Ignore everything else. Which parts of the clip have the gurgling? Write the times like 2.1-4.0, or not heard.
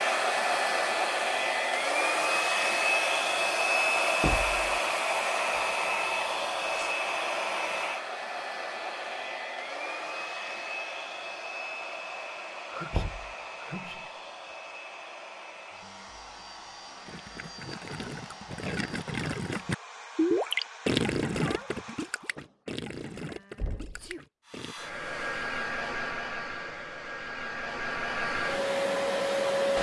17.1-24.8.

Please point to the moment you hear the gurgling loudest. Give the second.
20 s.